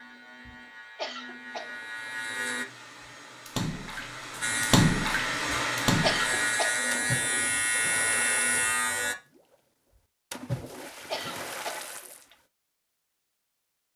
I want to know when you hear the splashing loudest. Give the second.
5 s.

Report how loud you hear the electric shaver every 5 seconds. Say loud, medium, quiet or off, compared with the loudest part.
medium, loud, off.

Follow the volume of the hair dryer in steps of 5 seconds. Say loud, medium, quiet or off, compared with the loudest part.
medium, loud, off.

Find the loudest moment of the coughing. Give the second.
6 s.